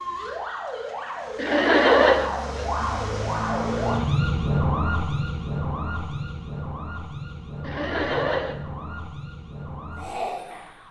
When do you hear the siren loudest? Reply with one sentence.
The volume of the siren peaks at 4 seconds.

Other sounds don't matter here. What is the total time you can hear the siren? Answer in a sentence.
The siren can be heard for 11 seconds in total.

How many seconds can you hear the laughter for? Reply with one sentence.
The laughter can be heard for 2 seconds in total.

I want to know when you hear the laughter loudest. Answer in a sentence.
The loudest moment of the laughter is at 2 seconds.